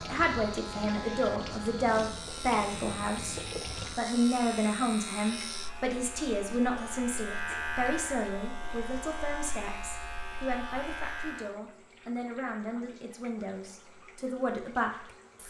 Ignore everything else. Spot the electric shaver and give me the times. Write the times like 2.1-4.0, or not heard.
0.0-11.6.